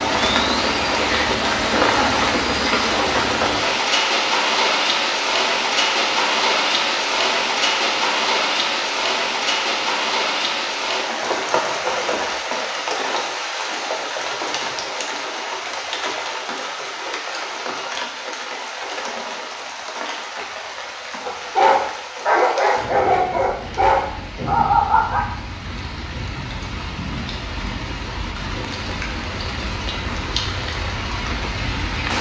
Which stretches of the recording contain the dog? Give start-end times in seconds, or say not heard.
21.2-25.2.